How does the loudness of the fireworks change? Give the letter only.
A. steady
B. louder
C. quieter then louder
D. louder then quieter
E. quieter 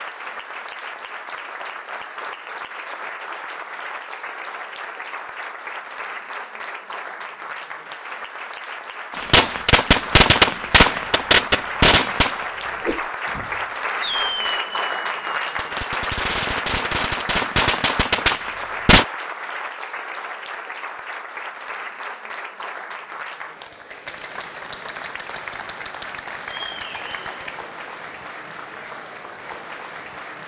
C.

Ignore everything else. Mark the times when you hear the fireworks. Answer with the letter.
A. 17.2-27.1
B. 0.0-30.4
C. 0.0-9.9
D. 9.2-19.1
D.